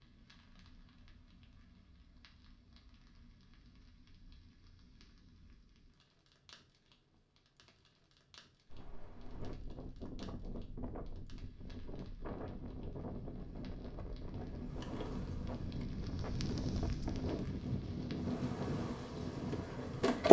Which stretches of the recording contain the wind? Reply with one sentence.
The wind can be heard from 8.7 to 20.2 s.